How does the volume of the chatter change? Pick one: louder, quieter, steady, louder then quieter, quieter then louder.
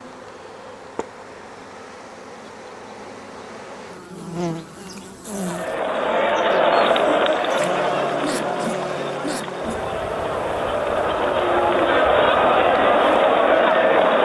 quieter then louder.